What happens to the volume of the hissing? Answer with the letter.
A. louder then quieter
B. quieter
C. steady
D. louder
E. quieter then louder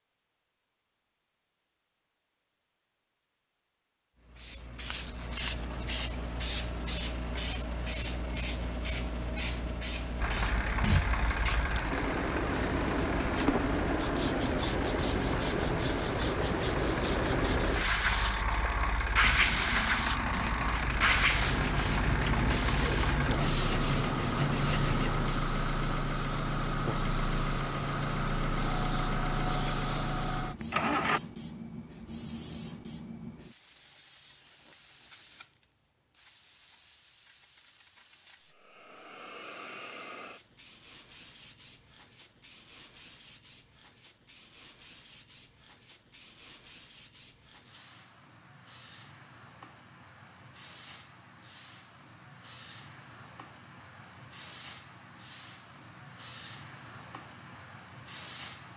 B.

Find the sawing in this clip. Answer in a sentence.
The sawing can be heard from 13.2 to 25.2 s.